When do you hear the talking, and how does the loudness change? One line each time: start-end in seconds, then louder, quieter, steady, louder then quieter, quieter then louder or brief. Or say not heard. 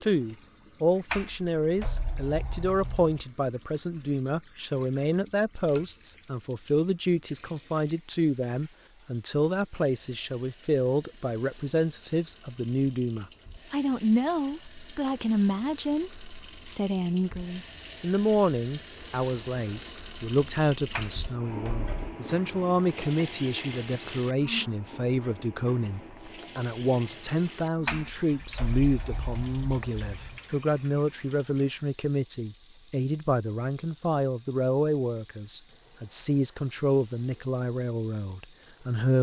0.0-39.1 steady.